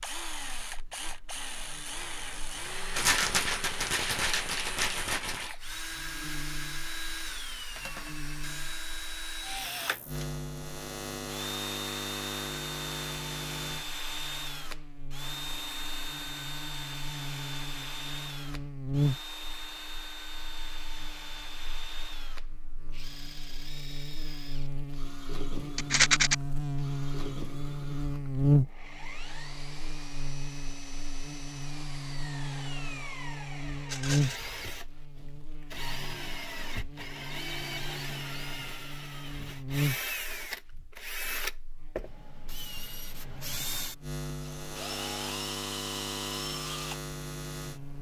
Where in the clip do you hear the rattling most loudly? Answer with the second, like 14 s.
26 s.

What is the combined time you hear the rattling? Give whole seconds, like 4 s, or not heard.
4 s.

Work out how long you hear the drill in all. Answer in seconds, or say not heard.
48 s.